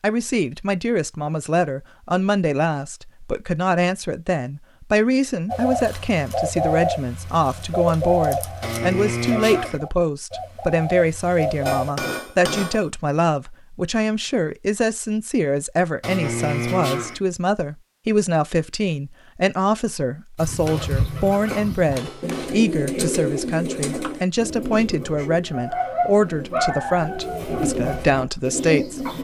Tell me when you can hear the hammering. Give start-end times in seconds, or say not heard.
11.7-12.9, 20.6-22.6.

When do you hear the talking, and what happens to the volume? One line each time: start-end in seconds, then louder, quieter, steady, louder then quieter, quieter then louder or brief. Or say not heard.
0.0-29.1 steady.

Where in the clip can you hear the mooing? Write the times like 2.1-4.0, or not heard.
8.6-9.8, 16.0-17.2.